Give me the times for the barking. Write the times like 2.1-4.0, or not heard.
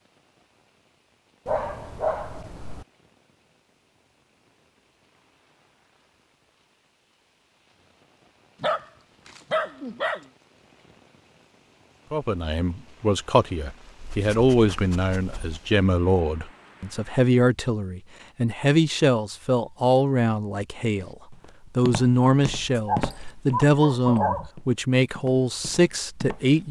1.4-2.9, 8.6-10.2, 14.0-15.6, 22.8-24.5.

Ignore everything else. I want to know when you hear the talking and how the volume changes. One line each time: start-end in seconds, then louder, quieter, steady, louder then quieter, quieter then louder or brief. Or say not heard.
12.1-26.6 steady.